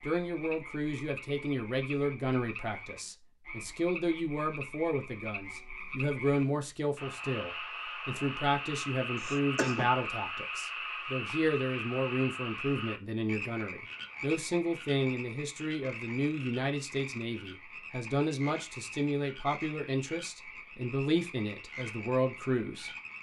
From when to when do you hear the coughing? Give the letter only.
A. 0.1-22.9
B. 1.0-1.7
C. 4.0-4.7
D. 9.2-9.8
D.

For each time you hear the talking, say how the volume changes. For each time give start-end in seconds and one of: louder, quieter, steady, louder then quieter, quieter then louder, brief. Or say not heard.
0.1-22.9 steady.